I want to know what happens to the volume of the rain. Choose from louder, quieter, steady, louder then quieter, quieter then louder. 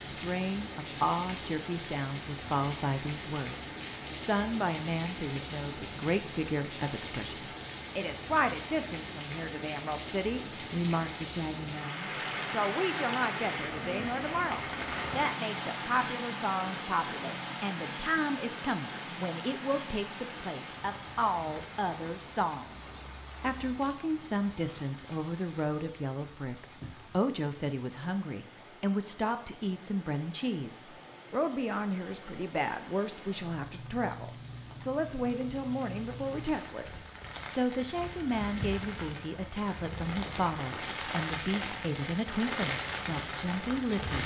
quieter then louder.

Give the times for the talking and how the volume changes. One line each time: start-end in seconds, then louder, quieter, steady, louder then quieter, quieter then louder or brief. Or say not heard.
0.0-44.2 steady.